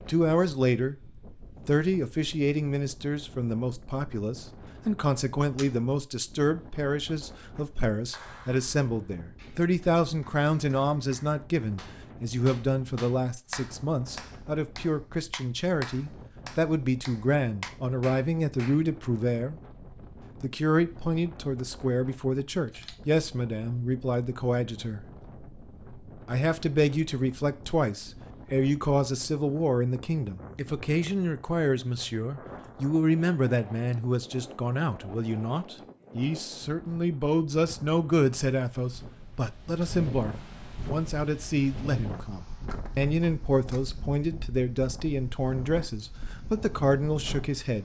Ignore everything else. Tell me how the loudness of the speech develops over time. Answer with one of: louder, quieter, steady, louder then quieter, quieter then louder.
steady.